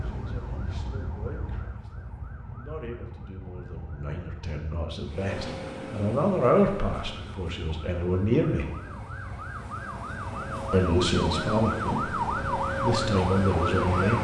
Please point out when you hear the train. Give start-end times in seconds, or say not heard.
5.0-14.2.